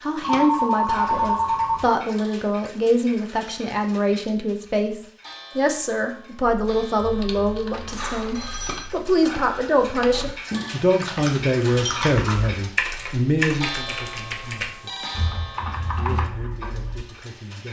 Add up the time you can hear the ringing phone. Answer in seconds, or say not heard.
4 s.